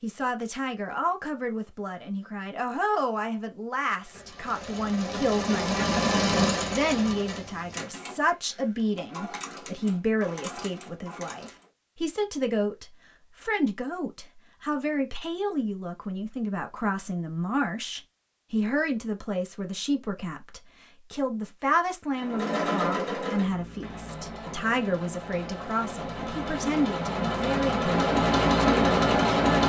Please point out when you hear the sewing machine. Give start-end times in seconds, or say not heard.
4.0-11.7, 22.1-29.6.